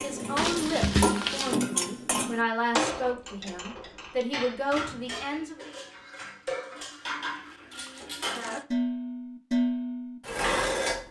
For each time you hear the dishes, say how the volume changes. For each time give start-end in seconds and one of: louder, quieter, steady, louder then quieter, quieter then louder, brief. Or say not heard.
0.0-11.0 quieter then louder.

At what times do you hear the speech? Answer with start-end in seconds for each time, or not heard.
0.0-5.7.